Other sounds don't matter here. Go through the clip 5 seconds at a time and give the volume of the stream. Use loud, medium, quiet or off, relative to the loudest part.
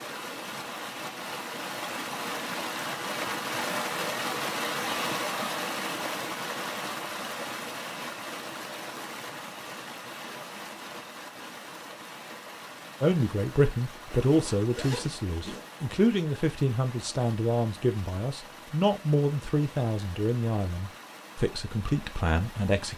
loud, loud, medium, quiet, quiet.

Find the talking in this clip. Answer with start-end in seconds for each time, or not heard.
13.0-22.9.